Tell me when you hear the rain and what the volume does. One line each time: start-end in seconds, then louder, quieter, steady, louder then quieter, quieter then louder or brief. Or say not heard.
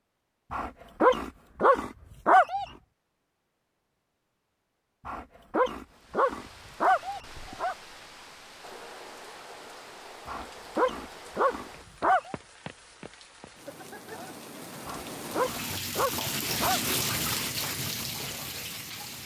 5.8-19.2 louder.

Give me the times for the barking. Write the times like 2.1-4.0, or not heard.
0.5-2.6, 5.0-7.8, 10.2-12.3, 14.8-16.8.